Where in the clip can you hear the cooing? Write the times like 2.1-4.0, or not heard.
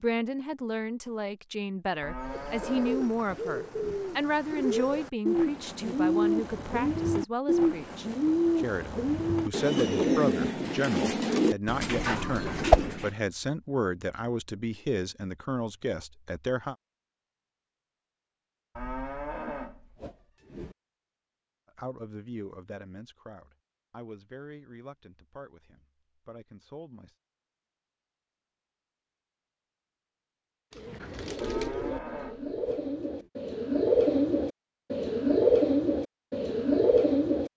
2.2-13.1, 30.8-37.5.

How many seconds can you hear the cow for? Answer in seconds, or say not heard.
6 s.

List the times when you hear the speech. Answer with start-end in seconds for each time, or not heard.
0.0-16.8, 21.8-27.1.